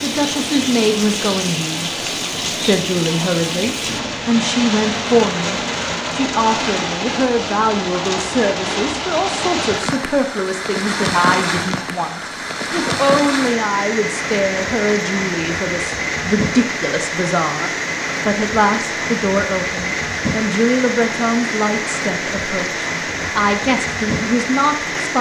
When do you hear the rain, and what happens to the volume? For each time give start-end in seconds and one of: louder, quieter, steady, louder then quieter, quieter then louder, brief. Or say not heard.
0.0-25.1 steady.